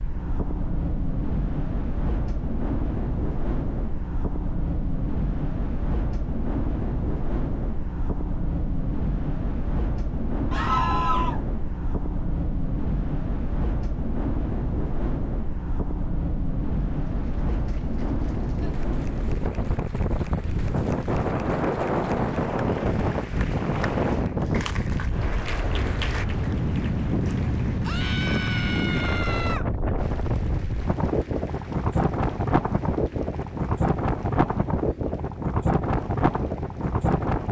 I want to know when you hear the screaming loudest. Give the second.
11 s.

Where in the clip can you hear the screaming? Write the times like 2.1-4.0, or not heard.
10.5-11.4, 27.8-29.6.